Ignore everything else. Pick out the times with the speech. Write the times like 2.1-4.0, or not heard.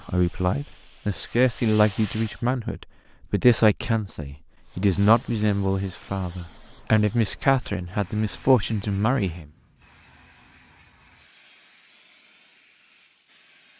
0.1-9.4.